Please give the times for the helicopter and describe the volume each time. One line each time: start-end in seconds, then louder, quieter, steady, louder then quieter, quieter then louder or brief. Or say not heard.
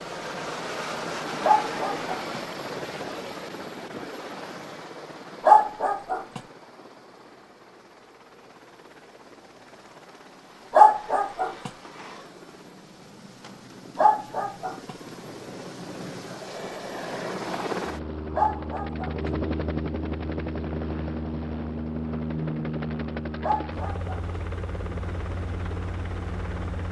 0.0-26.8 quieter then louder.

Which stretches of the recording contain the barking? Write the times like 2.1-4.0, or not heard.
1.4-2.4, 5.5-6.4, 10.7-11.7, 13.9-14.9, 18.4-19.3, 23.4-24.1.